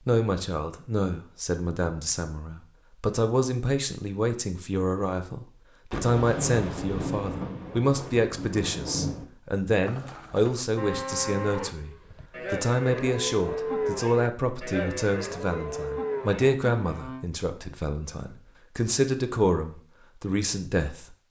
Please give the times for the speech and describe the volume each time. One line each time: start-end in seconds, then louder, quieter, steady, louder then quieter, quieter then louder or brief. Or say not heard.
0.1-21.2 steady.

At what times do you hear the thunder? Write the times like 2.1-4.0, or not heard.
5.9-9.2.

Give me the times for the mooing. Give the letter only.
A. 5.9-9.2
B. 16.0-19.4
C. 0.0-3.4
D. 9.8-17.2
D.